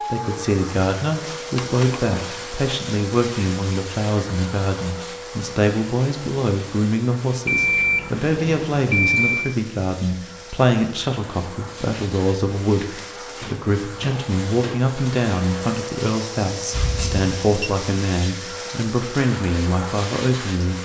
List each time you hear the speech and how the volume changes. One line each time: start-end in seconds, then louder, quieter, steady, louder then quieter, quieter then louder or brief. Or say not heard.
0.1-20.7 steady.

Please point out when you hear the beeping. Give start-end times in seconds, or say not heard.
1.6-2.0, 7.5-9.6, 16.7-17.7.